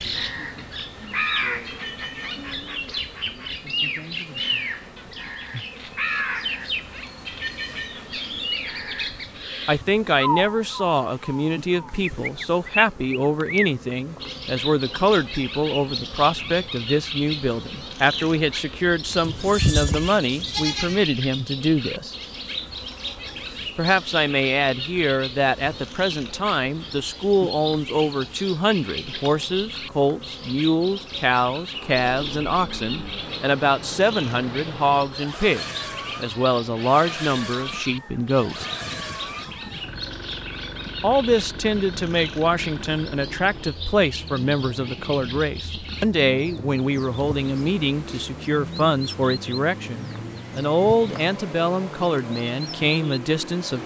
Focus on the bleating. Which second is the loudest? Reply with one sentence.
The volume of the bleating peaks at 20 seconds.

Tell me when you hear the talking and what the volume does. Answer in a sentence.
You can hear the talking from 9.7 to 22.1 s, at a steady volume; from 23.8 to 38.6 s, at a steady volume; and from 41.0 to 53.8 s, at a steady volume.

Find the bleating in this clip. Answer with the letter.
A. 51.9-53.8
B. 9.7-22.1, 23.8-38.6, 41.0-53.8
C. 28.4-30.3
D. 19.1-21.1
D.